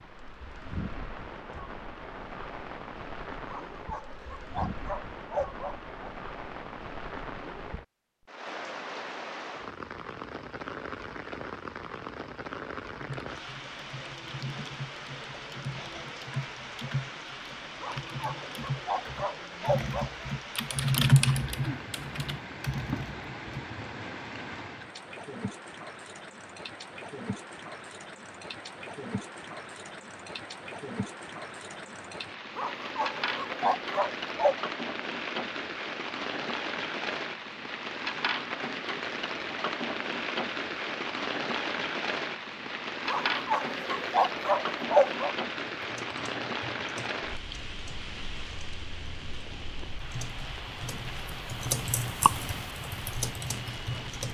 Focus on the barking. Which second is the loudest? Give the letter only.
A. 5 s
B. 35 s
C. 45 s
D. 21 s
C.